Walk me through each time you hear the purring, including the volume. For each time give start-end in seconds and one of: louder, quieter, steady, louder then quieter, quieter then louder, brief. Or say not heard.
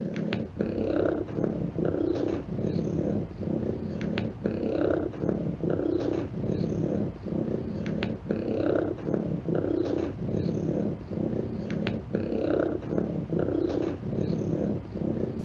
0.0-15.3 steady.